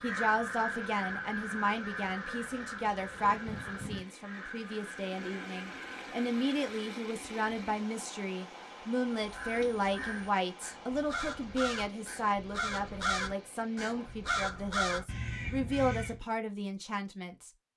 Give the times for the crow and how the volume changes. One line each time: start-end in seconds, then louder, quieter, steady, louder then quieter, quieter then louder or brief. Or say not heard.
0.0-7.0 quieter
9.1-16.2 louder.